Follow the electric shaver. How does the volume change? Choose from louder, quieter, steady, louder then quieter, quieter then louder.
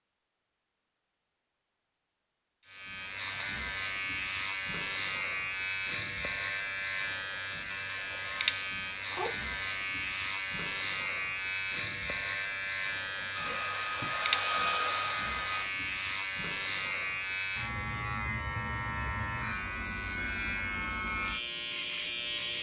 steady.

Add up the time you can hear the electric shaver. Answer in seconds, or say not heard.
20 s.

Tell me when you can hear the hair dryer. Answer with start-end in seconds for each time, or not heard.
13.3-15.7.